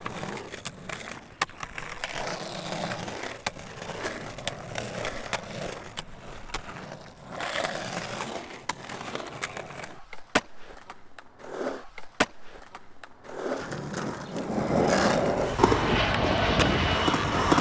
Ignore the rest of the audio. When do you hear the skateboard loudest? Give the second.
15 s.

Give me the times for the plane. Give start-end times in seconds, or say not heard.
15.4-17.5.